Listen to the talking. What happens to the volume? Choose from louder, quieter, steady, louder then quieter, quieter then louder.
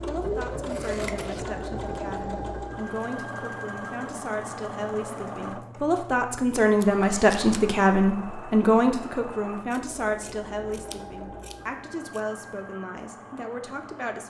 louder then quieter.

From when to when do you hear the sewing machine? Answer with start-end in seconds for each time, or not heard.
0.0-14.2.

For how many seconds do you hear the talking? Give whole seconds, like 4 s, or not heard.
14 s.